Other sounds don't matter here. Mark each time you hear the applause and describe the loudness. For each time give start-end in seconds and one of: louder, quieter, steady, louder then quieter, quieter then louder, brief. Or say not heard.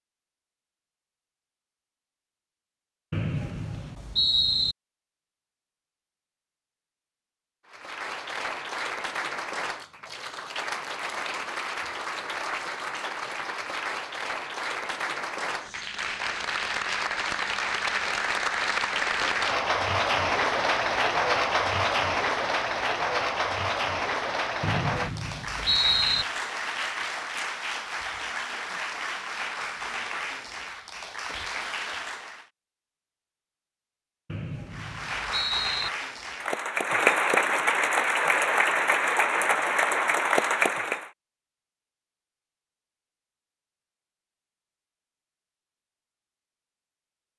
7.7-32.5 louder then quieter
34.7-41.1 louder.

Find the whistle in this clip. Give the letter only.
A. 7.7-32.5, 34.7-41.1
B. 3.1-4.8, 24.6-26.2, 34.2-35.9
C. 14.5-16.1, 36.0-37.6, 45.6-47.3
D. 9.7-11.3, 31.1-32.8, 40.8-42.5
B.